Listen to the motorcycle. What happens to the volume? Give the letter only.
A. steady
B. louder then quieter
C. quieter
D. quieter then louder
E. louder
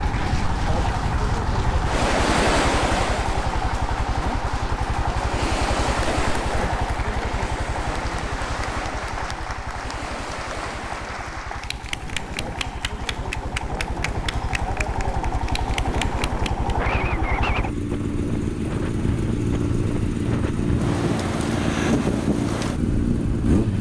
D.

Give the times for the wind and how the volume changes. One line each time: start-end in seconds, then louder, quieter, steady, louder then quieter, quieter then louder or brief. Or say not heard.
0.0-23.6 quieter then louder.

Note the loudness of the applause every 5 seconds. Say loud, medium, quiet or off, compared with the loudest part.
loud, loud, loud, loud, off.